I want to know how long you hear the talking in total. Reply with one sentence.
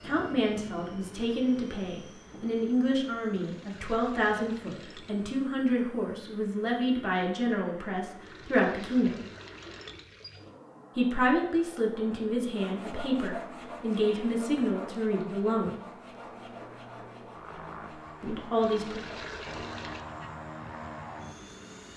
You can hear the talking for 15 seconds altogether.